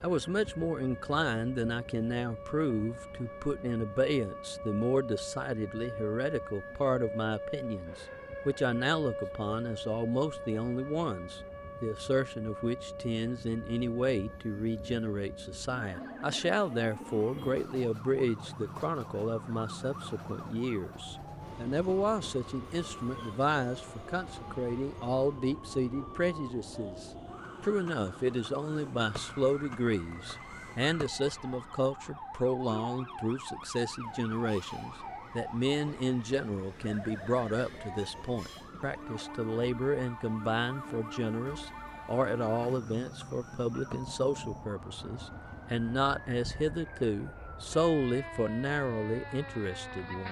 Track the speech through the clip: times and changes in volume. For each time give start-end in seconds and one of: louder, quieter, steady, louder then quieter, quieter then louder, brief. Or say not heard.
0.0-50.2 steady.